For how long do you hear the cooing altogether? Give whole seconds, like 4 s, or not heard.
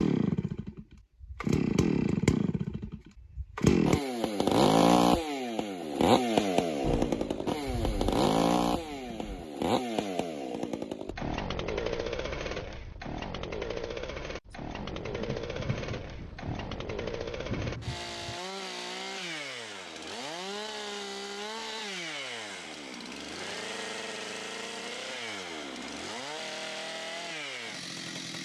not heard.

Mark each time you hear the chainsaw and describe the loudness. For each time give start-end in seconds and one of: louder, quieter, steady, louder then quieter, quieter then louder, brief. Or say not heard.
0.0-28.3 quieter.